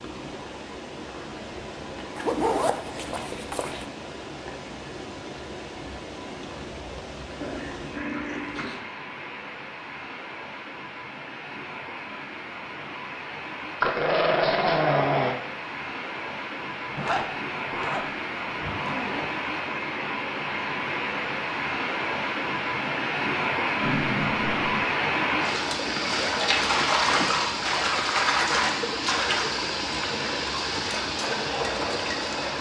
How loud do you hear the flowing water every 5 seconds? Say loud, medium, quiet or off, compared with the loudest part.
quiet, quiet, quiet, medium, loud, loud, loud.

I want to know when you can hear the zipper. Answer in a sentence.
You can hear the zipper from 2.1 to 3.9 s, from 16.9 to 19.2 s and from 25.9 to 27.4 s.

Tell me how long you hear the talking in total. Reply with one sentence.
You can't hear the talking here.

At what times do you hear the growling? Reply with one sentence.
The growling can be heard from 7.4 to 8.8 s, from 13.8 to 15.3 s and from 23.8 to 24.9 s.